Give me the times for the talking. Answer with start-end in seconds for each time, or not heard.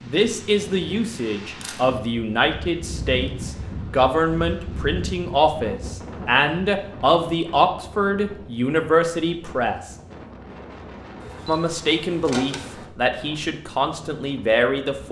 0.0-9.8, 11.4-15.0.